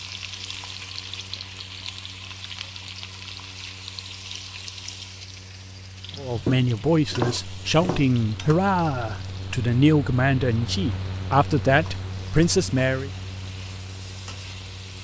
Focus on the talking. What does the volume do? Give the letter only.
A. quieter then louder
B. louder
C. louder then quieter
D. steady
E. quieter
D.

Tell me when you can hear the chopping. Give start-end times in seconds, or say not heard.
6.1-8.1.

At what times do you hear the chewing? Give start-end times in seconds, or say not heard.
not heard.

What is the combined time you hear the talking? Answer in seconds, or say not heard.
7 s.